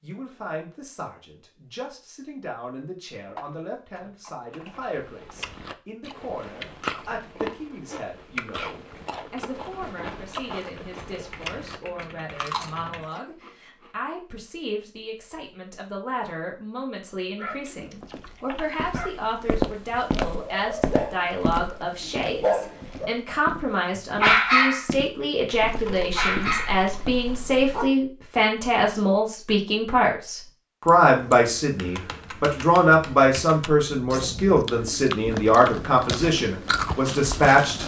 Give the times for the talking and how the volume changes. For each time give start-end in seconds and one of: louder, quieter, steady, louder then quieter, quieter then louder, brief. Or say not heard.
0.0-37.8 louder.